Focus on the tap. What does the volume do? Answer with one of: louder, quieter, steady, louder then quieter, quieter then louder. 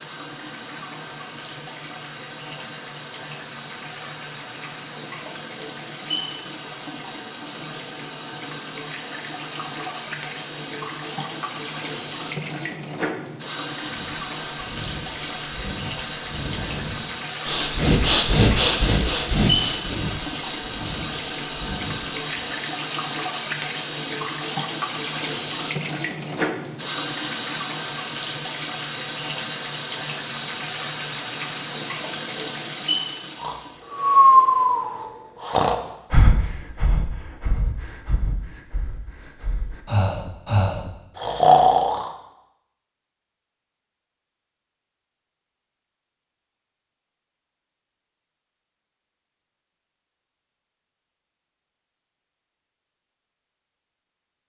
louder.